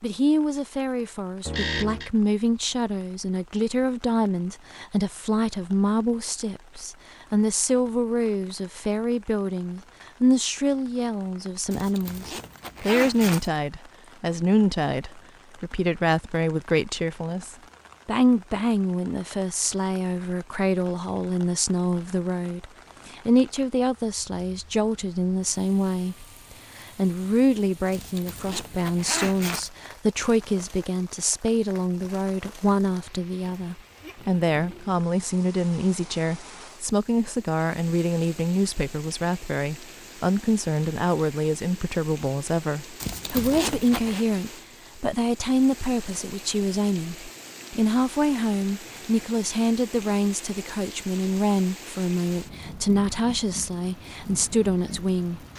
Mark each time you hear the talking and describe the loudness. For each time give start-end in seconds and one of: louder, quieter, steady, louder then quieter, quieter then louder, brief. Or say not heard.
0.0-55.4 steady.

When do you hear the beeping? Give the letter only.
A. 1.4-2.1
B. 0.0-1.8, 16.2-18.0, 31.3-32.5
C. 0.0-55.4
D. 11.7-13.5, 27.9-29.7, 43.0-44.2
A.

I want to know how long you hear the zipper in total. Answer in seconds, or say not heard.
5 s.